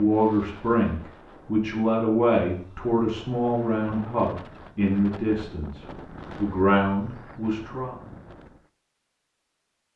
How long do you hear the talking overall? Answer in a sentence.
The talking can be heard for 8 seconds in total.